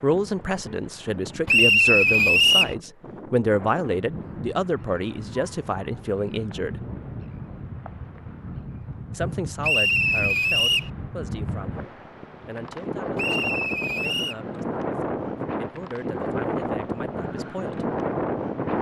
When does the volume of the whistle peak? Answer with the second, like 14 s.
2 s.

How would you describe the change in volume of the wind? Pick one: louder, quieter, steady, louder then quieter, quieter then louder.
louder.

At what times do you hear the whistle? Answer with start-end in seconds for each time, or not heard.
1.4-2.8, 9.6-10.9, 13.2-14.3.